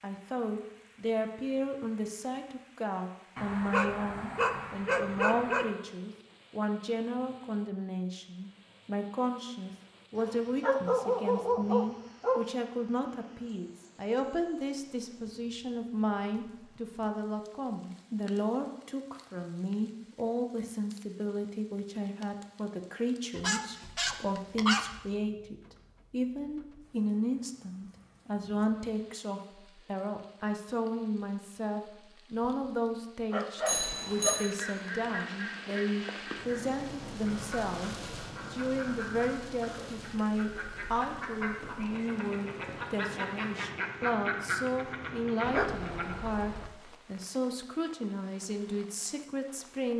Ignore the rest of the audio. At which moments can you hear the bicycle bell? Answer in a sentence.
The bicycle bell can be heard from 33.6 to 34.5 s.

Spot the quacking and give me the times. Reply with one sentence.
The quacking can be heard from 34.4 to 46.2 s.